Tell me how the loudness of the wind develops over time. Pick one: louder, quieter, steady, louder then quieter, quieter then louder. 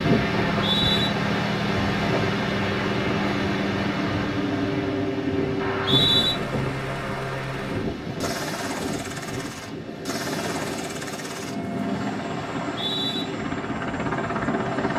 quieter.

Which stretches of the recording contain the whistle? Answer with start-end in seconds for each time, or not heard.
0.6-1.1, 5.5-6.3, 12.6-13.2.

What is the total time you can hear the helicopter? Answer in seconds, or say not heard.
15 s.